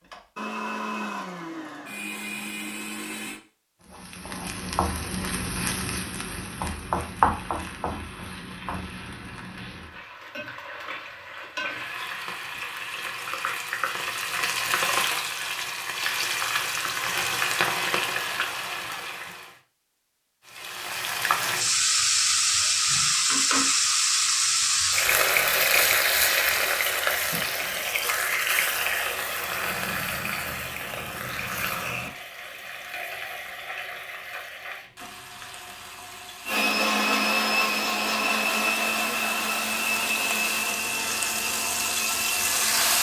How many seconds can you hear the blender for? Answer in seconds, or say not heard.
10 s.